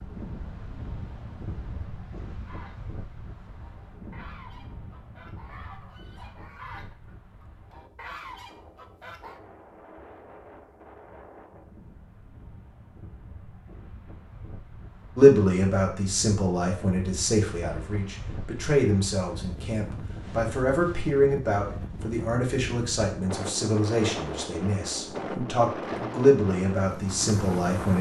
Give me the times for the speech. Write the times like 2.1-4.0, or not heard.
15.2-27.9.